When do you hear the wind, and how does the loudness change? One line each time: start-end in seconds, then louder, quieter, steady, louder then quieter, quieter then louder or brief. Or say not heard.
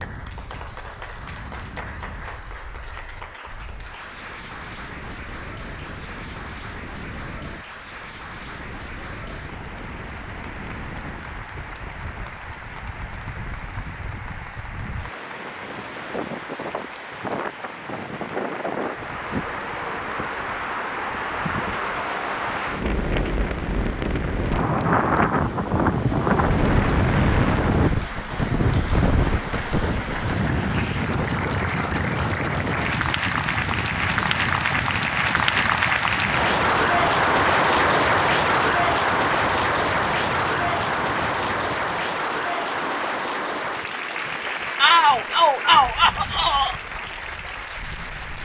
0.0-48.4 louder then quieter.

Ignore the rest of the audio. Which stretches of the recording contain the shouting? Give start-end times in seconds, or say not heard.
44.8-46.8.